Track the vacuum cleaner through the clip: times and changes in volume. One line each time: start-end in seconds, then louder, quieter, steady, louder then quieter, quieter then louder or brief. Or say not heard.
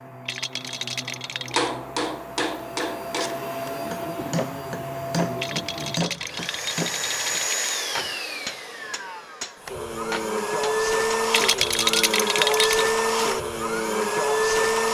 0.0-14.8 louder.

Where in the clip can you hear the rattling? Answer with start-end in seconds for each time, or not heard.
0.2-1.7, 5.3-7.6, 11.3-12.9.